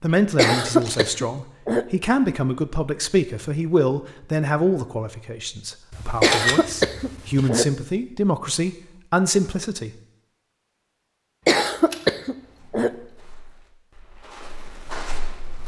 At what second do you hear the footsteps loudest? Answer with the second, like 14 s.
15 s.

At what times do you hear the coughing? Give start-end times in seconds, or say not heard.
0.3-1.9, 6.2-7.7, 11.4-12.9.